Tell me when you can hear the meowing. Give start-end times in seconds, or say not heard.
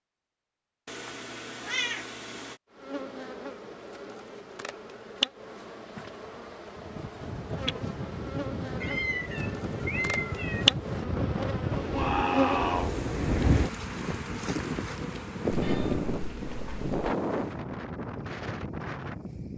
0.8-2.5, 8.8-10.8, 15.5-16.9.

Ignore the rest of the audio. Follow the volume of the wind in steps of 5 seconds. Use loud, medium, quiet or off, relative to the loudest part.
off, medium, loud, loud.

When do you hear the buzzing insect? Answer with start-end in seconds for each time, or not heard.
2.7-17.6.